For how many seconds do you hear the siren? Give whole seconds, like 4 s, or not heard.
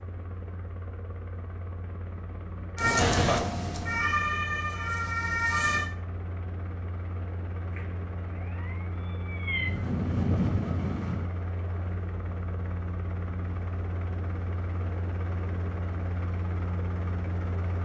7 s.